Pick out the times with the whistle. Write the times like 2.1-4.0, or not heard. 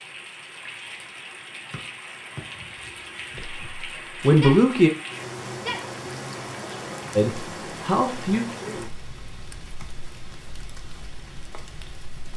1.7-2.4.